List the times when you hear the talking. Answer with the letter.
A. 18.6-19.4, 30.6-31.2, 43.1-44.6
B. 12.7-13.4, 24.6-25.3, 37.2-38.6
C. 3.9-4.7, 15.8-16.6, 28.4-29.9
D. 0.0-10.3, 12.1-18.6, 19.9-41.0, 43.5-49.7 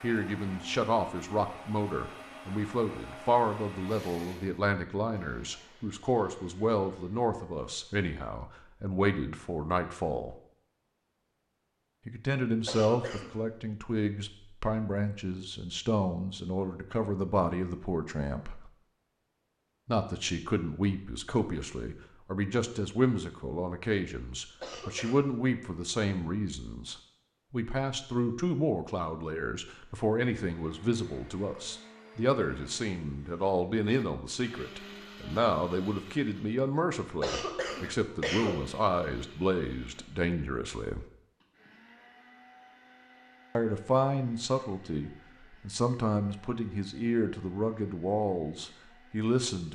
D.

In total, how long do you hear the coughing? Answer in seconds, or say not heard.
3 s.